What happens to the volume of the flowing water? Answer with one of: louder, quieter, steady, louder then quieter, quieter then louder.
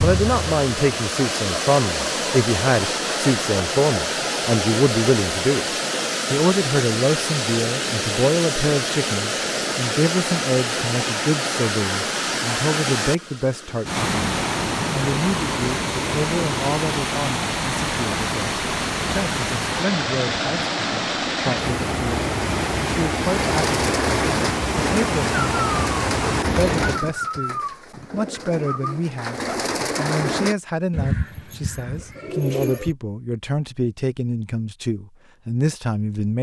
steady.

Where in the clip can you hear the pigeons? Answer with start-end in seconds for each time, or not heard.
23.3-33.0.